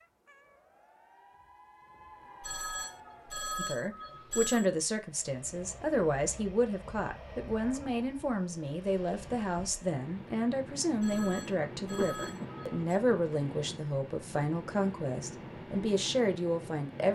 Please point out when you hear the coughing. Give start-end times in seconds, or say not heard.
11.9-12.7.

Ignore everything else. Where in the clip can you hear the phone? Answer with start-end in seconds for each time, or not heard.
2.4-4.7, 11.0-12.8.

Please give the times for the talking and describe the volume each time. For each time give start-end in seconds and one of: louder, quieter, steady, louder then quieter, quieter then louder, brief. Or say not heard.
3.5-17.1 steady.